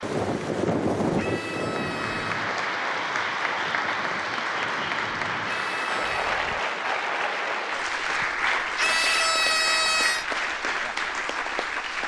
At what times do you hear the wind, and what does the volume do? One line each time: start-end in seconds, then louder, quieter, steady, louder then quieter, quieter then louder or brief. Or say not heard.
0.0-6.6 quieter.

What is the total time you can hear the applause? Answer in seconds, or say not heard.
12 s.